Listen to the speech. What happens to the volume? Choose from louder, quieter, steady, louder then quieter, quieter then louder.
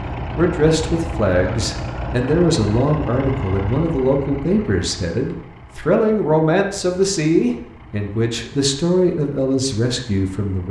steady.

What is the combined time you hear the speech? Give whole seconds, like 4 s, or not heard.
10 s.